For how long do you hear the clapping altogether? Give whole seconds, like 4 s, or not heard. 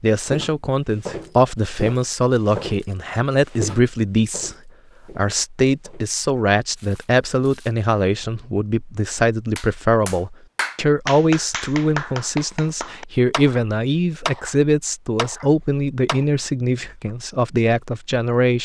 7 s.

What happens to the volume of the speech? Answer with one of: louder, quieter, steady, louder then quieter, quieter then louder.
steady.